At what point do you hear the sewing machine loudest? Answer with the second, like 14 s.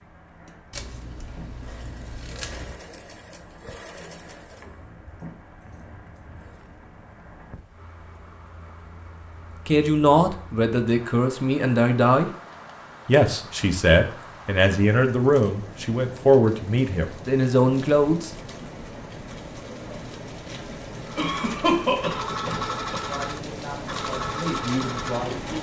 23 s.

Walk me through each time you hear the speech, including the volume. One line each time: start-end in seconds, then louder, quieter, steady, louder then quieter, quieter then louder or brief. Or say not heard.
9.7-12.3 brief
13.1-18.3 steady
23.1-25.5 brief.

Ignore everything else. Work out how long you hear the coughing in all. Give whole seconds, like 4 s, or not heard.
2 s.